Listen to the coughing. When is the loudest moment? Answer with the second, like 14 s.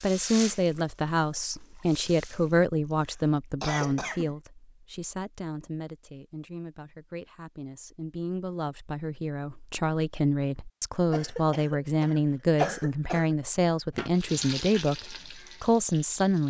13 s.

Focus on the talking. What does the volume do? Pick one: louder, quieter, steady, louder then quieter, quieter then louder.
quieter then louder.